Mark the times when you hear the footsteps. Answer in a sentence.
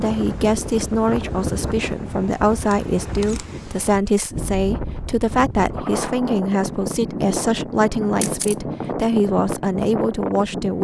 You can't hear the footsteps here.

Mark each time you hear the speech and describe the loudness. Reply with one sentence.
You can hear the speech from 0.0 to 10.7 s, at a steady volume.